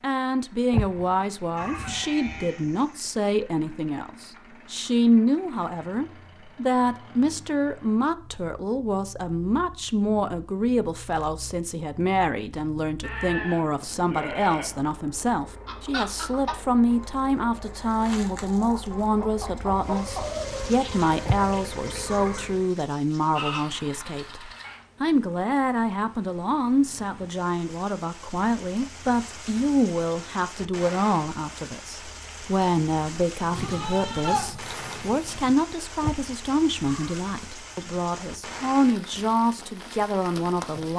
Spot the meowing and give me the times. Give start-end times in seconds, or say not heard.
0.7-1.9, 21.2-22.4, 36.0-37.2.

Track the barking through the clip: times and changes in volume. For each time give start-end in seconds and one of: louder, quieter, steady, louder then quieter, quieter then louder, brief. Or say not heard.
not heard.